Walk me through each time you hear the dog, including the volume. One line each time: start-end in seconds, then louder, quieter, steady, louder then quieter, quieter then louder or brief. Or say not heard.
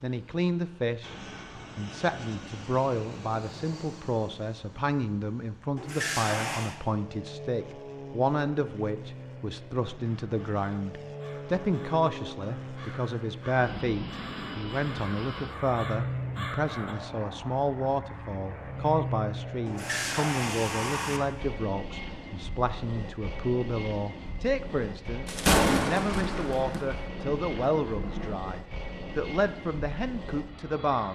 not heard.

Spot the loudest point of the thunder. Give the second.
26 s.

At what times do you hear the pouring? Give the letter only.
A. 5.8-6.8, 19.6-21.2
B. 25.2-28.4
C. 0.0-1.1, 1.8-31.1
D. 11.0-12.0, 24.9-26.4
A.